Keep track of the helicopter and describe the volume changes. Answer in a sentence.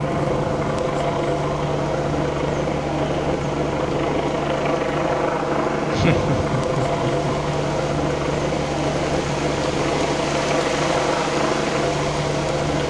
The volume of the helicopter stays about the same.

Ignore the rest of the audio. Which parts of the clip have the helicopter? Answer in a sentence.
The helicopter can be heard from 0.0 to 12.8 s.